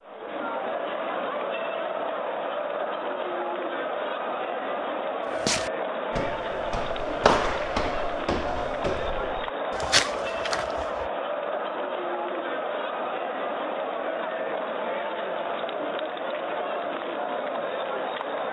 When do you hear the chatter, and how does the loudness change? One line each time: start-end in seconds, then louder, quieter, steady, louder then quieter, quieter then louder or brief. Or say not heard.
0.0-18.4 steady.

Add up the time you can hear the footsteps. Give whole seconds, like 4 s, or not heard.
6 s.